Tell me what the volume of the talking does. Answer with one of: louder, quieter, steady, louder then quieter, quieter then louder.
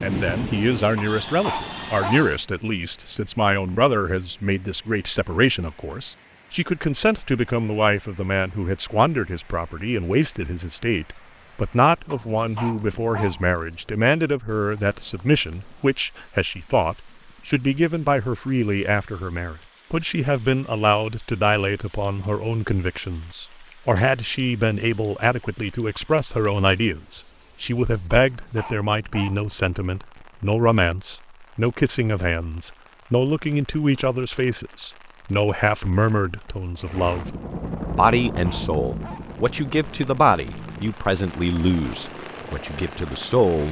steady.